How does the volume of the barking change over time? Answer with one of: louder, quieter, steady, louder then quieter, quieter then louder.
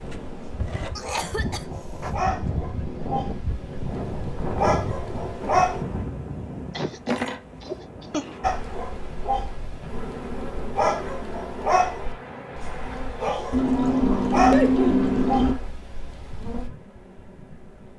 louder.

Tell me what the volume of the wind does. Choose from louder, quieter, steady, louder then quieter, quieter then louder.
louder then quieter.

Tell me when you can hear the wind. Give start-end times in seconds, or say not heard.
0.0-13.1.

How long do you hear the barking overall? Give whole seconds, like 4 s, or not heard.
14 s.